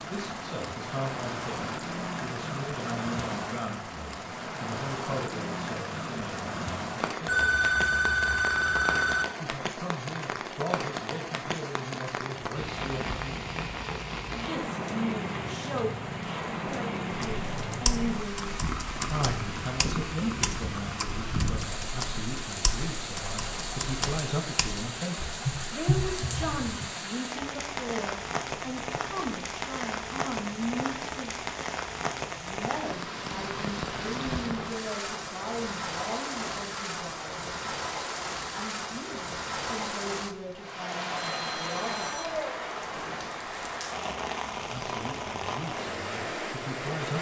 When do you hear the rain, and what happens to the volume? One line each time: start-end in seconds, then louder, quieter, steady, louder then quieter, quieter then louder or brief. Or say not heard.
0.0-47.1 steady.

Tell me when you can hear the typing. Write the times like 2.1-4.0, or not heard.
17.1-26.9.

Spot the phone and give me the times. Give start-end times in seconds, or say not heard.
7.2-9.2, 41.1-42.3.